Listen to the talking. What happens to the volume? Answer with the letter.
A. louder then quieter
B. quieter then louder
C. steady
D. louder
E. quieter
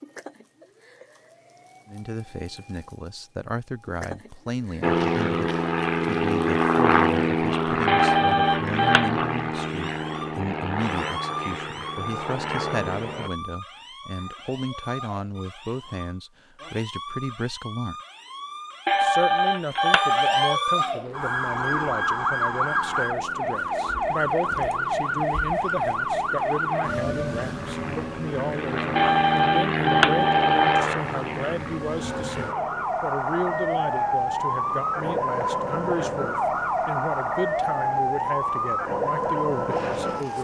C.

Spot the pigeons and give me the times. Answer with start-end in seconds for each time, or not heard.
not heard.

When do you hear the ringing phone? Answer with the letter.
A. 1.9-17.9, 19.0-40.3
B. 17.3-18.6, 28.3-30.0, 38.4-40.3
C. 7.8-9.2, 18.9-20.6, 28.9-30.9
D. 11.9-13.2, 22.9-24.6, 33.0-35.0
C.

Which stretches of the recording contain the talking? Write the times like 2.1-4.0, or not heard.
1.9-17.9, 19.0-40.3.